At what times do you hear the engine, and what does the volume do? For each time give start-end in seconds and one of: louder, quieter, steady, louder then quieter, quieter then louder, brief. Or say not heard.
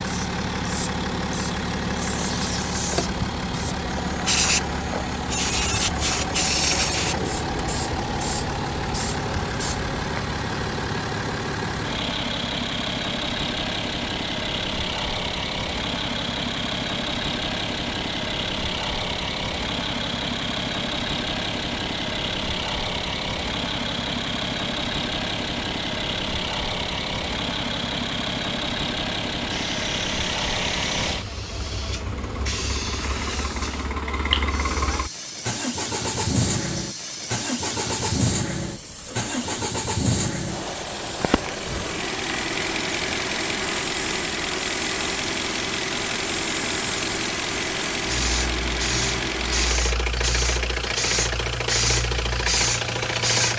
0.0-53.5 steady.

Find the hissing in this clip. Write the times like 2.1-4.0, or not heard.
0.0-9.8, 29.5-53.5.